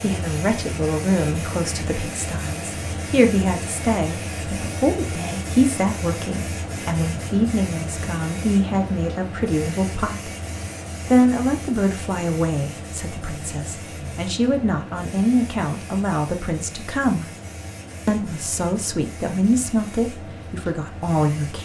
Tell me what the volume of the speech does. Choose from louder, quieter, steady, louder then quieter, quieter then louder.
steady.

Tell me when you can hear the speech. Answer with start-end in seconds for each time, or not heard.
0.0-10.3, 11.1-17.2, 18.1-21.6.